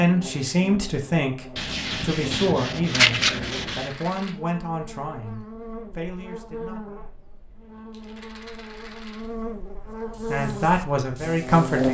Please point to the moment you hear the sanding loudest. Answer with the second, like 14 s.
3 s.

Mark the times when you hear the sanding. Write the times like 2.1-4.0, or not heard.
1.6-3.9.